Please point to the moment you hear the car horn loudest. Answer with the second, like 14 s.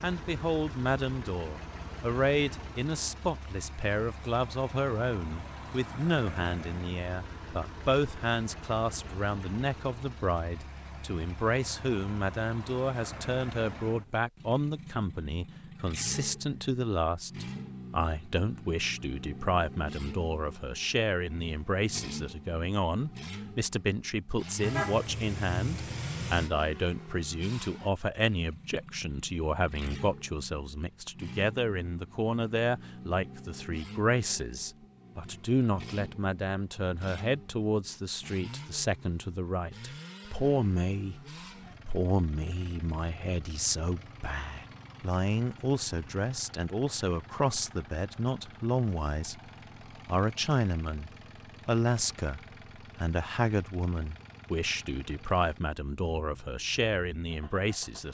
25 s.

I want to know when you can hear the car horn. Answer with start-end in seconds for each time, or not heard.
24.6-26.5.